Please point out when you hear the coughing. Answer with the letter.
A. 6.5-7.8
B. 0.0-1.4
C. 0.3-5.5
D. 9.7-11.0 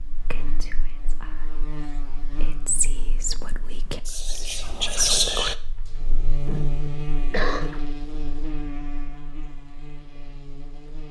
A.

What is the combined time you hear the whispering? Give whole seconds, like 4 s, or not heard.
5 s.